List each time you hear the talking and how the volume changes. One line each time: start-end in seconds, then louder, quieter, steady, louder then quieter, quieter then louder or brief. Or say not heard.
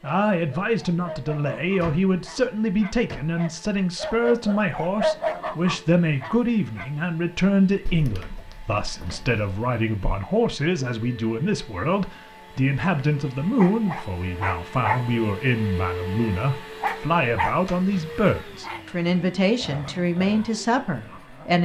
0.0-21.6 steady.